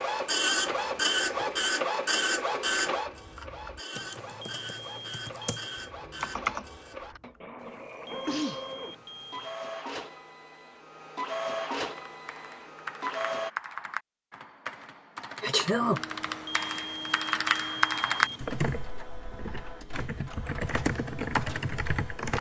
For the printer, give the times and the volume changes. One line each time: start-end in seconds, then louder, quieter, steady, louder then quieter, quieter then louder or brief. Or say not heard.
0.0-13.5 quieter then louder
15.8-22.3 steady.